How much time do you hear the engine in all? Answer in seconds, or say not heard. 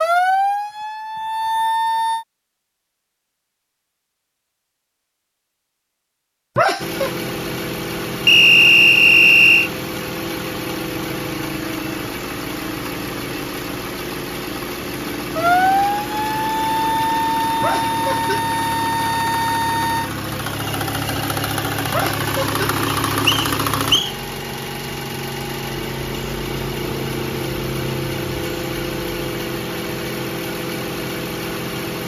25 s.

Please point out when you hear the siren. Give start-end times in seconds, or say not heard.
0.0-2.2, 14.8-20.1.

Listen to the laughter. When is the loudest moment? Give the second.
7 s.